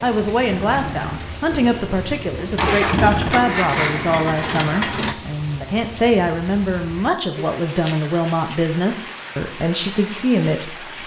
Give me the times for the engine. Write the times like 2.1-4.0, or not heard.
0.0-5.2.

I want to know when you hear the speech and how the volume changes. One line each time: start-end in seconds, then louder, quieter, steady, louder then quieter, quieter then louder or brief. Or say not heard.
0.0-10.9 steady.